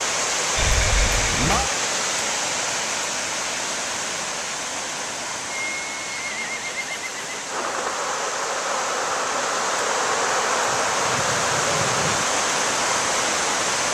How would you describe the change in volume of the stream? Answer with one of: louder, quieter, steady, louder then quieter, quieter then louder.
quieter then louder.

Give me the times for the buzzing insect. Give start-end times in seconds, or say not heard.
7.5-13.8.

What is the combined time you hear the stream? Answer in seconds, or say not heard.
14 s.